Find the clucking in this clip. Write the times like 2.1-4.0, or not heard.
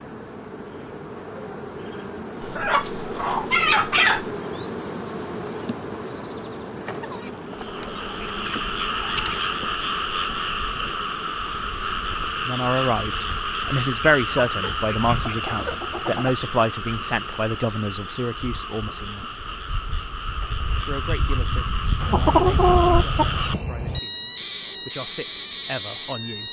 2.4-4.3, 7.0-9.8, 14.3-16.3, 22.0-24.0.